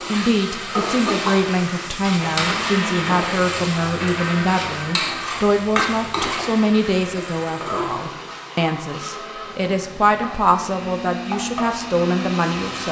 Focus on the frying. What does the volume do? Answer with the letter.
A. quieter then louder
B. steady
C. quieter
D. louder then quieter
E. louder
C.